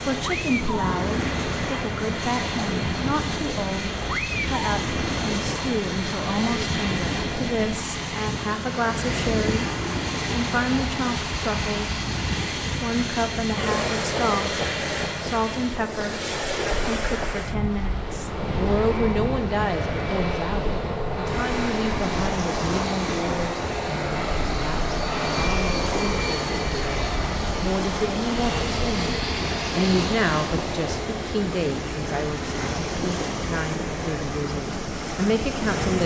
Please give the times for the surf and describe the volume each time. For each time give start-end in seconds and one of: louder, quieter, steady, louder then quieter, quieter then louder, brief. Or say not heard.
0.0-36.0 steady.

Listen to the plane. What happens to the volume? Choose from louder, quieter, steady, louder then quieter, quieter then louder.
steady.